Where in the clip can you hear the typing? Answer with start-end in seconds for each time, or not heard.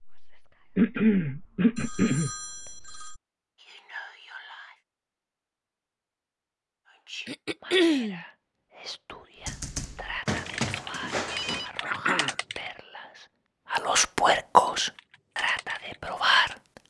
9.4-12.7, 14.8-16.6.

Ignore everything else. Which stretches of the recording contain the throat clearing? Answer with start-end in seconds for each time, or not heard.
0.8-2.3, 7.2-8.2, 11.8-12.3.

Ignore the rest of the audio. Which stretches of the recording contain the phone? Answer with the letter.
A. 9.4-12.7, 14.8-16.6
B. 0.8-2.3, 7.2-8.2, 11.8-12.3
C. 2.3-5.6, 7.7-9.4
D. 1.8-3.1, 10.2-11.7
D.